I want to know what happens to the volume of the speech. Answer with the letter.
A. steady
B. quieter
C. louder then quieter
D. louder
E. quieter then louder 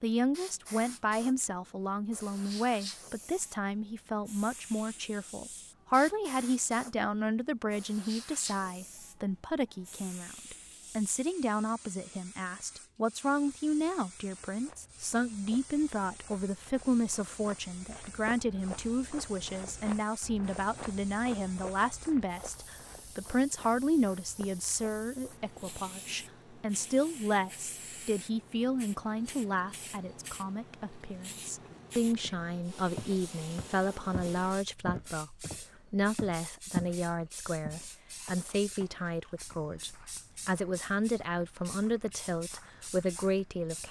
A.